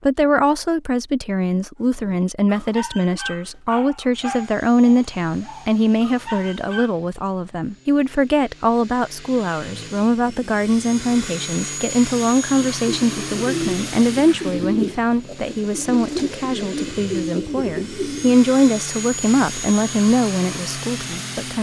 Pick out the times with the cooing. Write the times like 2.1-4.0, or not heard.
12.8-18.4.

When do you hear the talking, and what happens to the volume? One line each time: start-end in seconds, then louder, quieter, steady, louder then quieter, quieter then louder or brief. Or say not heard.
0.0-21.5 steady.